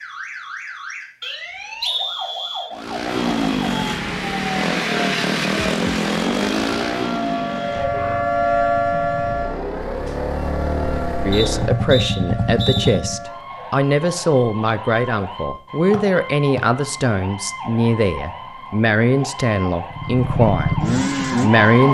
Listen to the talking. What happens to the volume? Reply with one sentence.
The volume of the talking stays about the same.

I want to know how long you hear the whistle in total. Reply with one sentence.
You can hear the whistle for 4 seconds altogether.